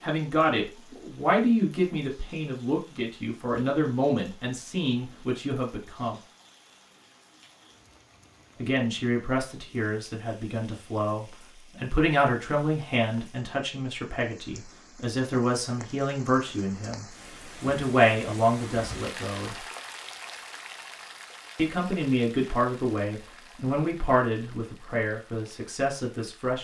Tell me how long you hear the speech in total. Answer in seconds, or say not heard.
22 s.